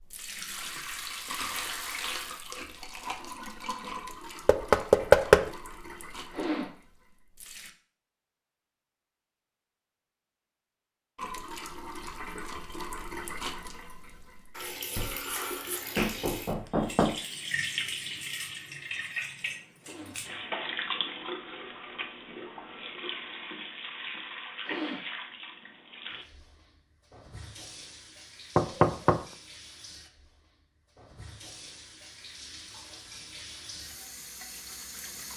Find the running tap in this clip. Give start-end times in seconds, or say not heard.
0.0-7.7, 11.2-35.3.